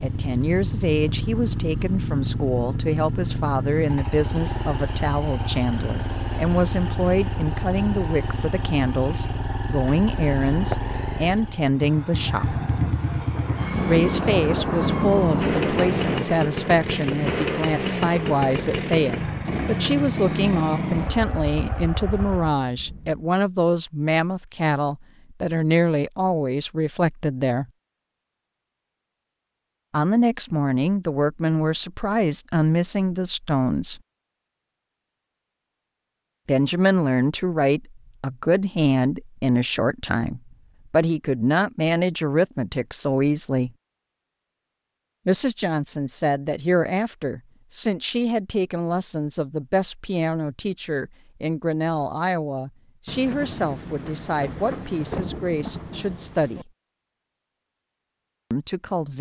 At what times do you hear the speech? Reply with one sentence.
The speech can be heard from 0.0 to 12.6 s, from 13.8 to 27.6 s, from 29.9 to 34.0 s, from 36.5 to 43.7 s, from 45.2 to 56.7 s and from 58.5 to 59.1 s.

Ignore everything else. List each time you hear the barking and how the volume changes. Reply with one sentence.
You can't hear the barking here.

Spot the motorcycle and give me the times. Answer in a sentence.
You can hear the motorcycle from 0.0 to 22.6 s.